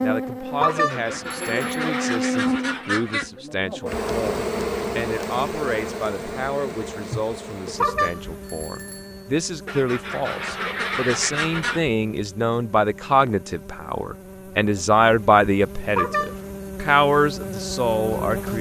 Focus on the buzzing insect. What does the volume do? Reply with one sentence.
The loudness of the buzzing insect goes down, then up.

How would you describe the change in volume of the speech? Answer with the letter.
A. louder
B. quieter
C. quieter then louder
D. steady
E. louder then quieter
A.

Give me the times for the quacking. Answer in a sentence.
You can hear the quacking from 0.7 to 3.3 s and from 9.7 to 11.8 s.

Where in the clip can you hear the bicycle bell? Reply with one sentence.
You can hear the bicycle bell from 0.6 to 1.8 s, from 7.8 to 9.3 s and from 15.9 to 16.7 s.